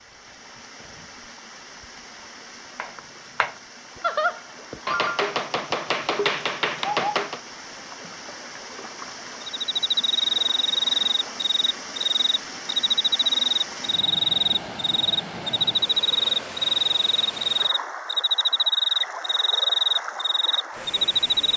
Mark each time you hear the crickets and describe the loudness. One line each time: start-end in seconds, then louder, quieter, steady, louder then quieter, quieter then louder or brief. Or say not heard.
9.4-21.5 steady.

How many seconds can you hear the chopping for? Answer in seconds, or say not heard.
5 s.